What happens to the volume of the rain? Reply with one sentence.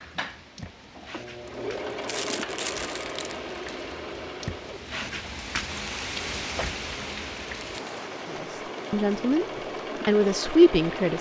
The loudness of the rain goes up, then down.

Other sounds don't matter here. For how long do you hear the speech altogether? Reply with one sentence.
The speech can be heard for 2 seconds in total.